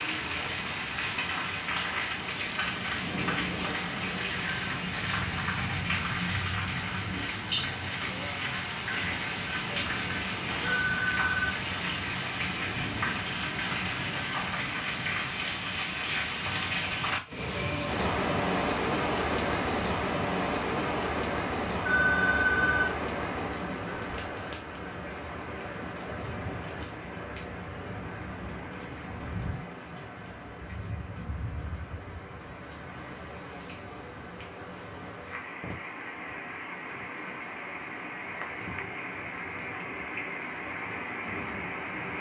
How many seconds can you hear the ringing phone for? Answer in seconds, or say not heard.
2 s.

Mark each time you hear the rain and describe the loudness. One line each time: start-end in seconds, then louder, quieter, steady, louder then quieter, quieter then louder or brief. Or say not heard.
0.0-42.1 quieter.